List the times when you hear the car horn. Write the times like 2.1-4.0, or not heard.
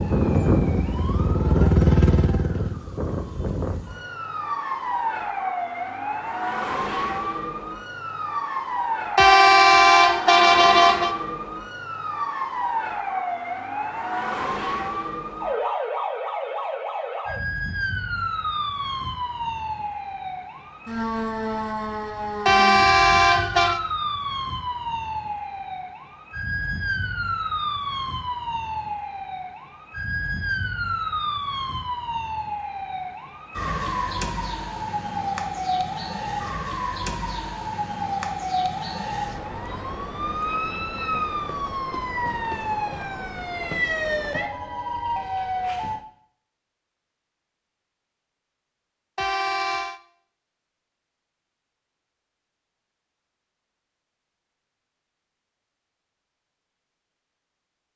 9.2-11.2, 22.4-23.8, 49.1-50.0.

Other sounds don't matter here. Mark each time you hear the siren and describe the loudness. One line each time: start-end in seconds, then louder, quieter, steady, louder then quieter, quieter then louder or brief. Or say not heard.
0.0-46.0 steady.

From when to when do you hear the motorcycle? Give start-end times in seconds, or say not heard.
0.0-2.8.